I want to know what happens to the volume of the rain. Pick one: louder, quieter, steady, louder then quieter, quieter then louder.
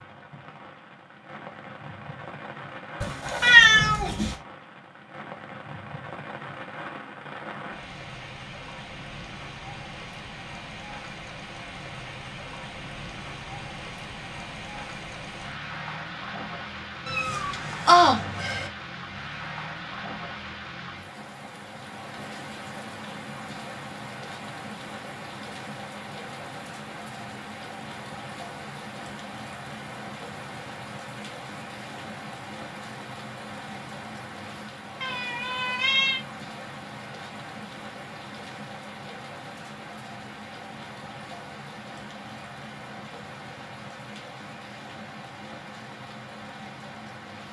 steady.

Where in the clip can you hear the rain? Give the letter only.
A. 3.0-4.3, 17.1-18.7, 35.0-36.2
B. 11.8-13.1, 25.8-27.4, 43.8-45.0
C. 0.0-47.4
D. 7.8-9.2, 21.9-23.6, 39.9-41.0
C.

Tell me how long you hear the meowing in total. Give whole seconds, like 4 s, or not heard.
4 s.